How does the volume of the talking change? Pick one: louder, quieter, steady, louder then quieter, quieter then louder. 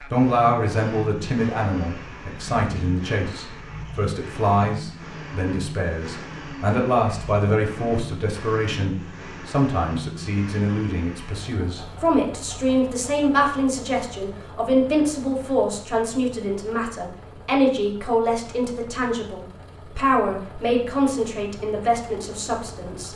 steady.